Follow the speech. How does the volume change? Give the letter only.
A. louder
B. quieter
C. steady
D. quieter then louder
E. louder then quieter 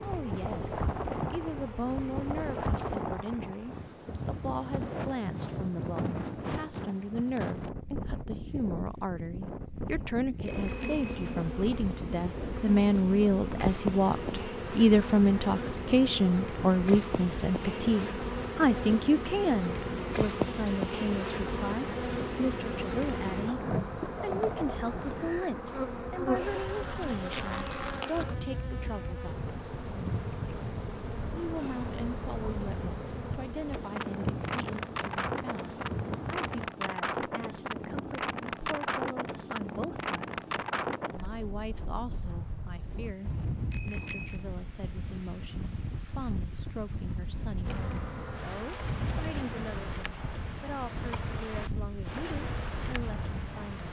E.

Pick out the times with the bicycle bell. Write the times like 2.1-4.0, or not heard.
10.4-11.4, 43.7-44.5.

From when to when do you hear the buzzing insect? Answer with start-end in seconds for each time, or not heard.
0.0-3.0, 10.4-36.7, 47.6-53.8.